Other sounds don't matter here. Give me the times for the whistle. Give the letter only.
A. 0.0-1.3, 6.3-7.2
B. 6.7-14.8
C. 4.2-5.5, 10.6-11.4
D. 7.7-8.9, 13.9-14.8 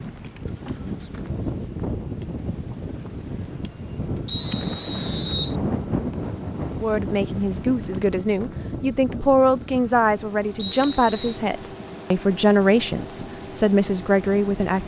C.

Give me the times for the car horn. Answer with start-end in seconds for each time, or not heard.
not heard.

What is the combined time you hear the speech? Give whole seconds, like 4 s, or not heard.
8 s.